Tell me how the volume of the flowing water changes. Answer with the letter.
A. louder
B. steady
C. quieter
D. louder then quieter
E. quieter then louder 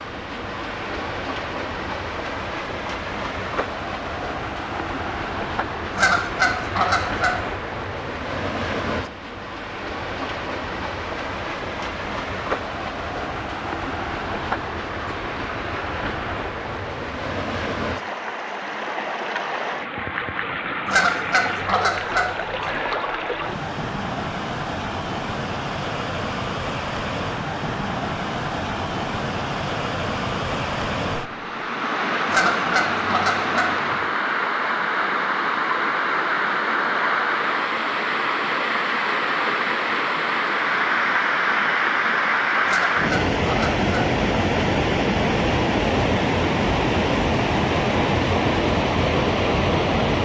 A.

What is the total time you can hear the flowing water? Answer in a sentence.
You can hear the flowing water for 50 seconds altogether.